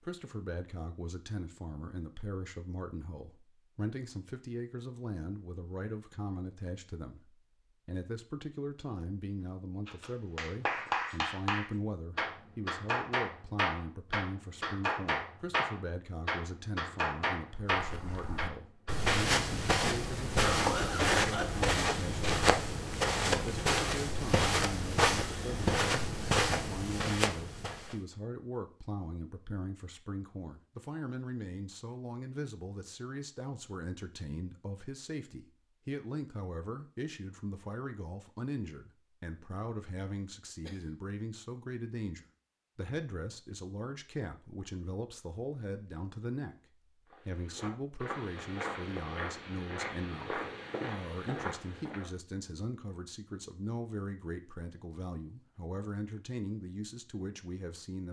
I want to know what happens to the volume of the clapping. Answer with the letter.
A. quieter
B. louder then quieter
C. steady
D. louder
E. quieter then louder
C.